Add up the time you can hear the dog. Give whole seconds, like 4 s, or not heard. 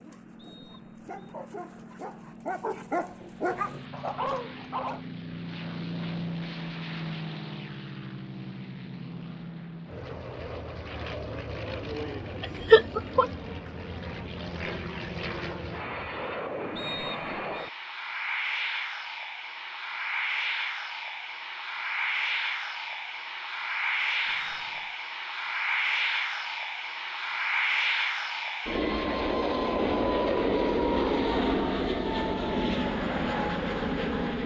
5 s.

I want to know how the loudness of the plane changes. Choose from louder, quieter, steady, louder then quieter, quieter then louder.
louder.